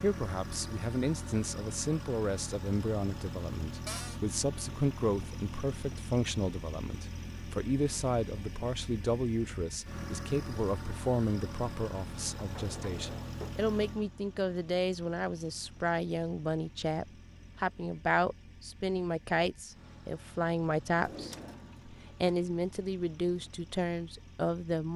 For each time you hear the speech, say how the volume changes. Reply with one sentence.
You can hear the speech from 0.0 to 24.9 s, at a steady volume.